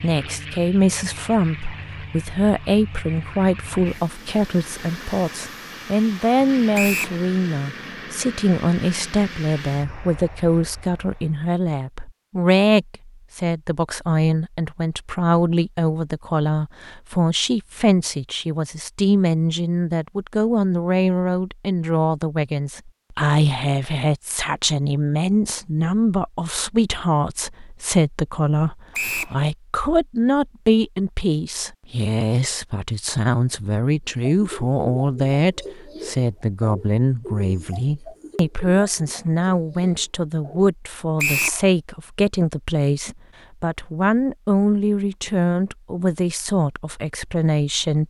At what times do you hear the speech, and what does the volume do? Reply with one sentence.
The speech can be heard from 0.0 to 48.0 s, at a steady volume.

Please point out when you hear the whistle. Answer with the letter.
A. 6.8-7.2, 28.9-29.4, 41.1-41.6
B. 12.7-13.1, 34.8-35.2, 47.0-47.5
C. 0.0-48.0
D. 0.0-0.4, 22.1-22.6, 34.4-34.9
A.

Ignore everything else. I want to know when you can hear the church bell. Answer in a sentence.
The church bell can't be heard in this clip.